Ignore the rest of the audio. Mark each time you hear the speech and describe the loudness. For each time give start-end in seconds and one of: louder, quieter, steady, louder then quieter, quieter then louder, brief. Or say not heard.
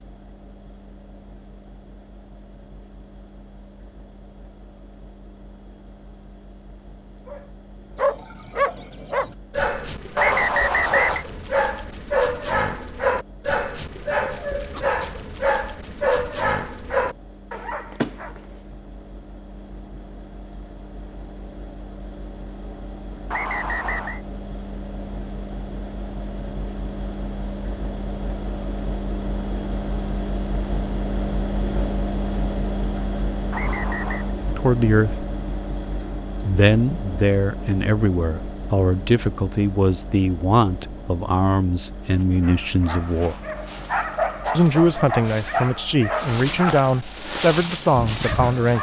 34.5-35.2 brief
36.4-43.4 steady
44.5-48.7 steady.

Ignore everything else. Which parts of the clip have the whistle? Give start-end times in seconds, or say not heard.
10.2-11.2, 23.3-24.2, 33.5-34.3.